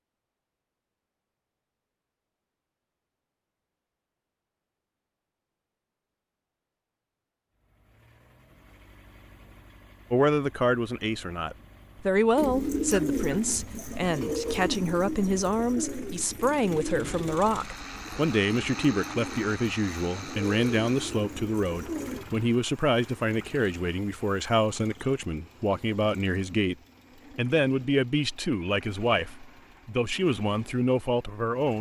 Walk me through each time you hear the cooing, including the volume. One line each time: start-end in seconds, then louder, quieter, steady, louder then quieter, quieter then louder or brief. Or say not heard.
12.3-22.2 quieter.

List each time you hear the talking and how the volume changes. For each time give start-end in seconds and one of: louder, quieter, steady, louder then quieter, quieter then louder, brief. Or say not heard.
10.1-26.8 steady
27.4-31.7 quieter then louder.